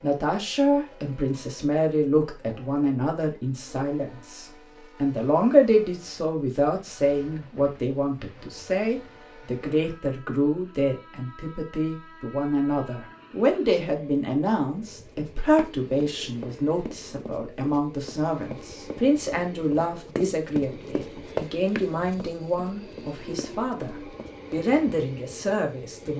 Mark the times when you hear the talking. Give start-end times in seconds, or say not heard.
0.0-26.1.